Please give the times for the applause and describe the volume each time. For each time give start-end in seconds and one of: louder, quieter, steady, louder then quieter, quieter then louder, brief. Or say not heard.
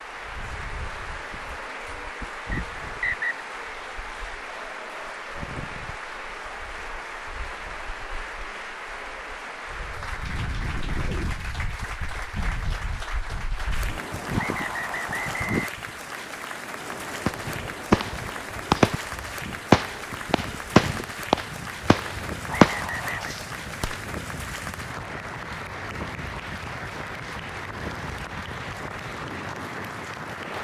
0.0-30.5 steady.